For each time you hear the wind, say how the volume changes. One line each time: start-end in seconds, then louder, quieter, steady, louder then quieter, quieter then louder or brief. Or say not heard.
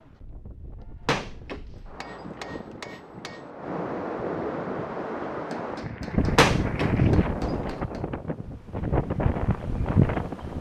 0.0-10.5 louder.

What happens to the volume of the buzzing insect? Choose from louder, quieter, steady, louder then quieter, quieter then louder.
quieter then louder.